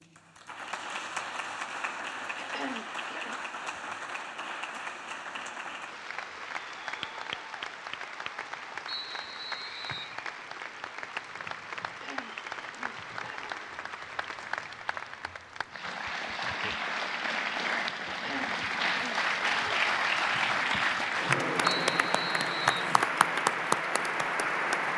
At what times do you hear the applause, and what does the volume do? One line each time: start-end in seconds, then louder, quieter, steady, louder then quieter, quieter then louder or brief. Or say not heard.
0.0-24.9 louder.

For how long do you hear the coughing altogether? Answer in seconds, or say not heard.
4 s.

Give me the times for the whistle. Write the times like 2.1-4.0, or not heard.
8.8-10.2, 21.9-22.9.